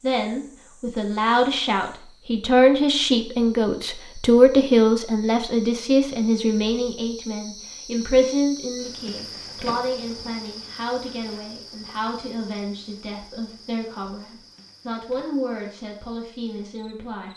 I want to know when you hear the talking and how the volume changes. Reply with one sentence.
The talking can be heard from 0.0 to 17.3 s, getting quieter.